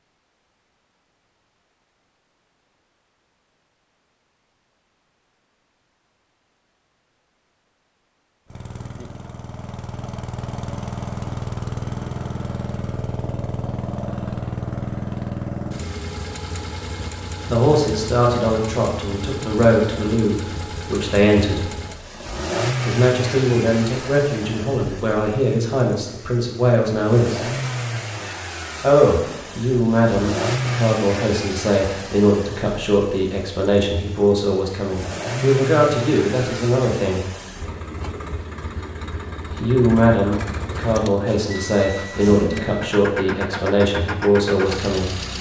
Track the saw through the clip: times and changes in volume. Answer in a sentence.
You can't hear the saw here.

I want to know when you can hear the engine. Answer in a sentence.
You can hear the engine from 8.5 to 45.3 s.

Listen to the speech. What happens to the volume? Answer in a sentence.
The volume of the speech stays about the same.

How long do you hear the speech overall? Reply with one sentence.
The speech can be heard for 23 seconds in total.